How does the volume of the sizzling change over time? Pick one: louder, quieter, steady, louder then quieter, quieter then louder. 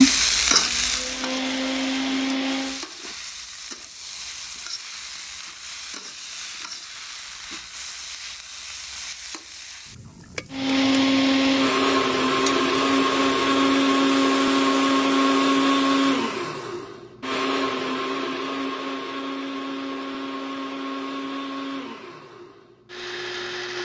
quieter.